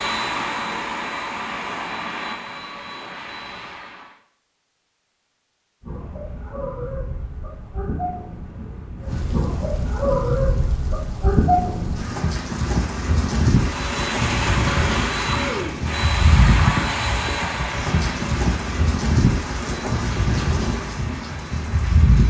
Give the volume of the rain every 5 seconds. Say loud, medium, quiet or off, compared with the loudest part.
off, medium, loud, loud, loud.